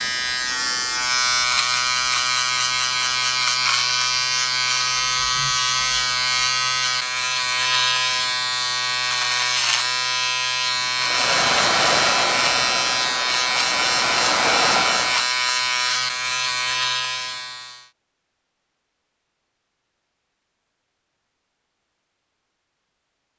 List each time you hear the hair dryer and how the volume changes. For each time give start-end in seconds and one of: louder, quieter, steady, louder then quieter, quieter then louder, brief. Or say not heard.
10.9-15.2 quieter then louder.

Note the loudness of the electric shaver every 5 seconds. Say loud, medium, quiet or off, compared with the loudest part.
loud, loud, loud, loud, off.